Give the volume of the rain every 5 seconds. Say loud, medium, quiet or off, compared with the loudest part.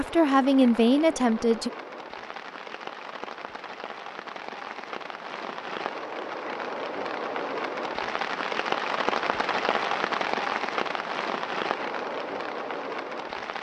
medium, loud, loud.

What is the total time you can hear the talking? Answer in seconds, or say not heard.
2 s.